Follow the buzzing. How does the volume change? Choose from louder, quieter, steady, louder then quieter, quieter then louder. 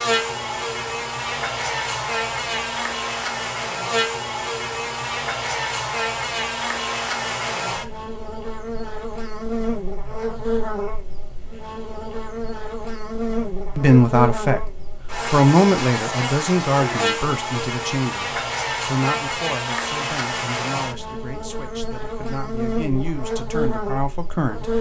steady.